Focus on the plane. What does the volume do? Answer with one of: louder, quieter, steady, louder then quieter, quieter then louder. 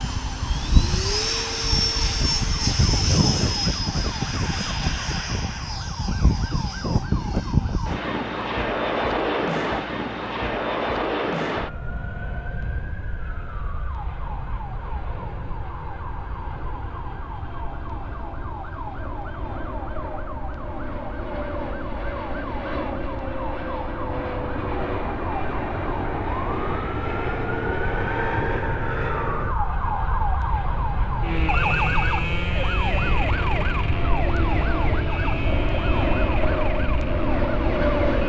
quieter then louder.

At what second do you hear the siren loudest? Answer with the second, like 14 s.
32 s.